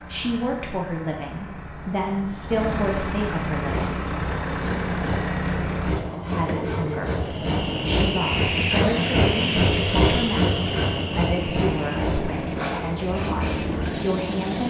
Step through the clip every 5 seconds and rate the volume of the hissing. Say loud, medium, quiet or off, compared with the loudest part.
off, loud, medium.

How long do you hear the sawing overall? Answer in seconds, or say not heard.
9 s.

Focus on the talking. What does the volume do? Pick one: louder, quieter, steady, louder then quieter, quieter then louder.
steady.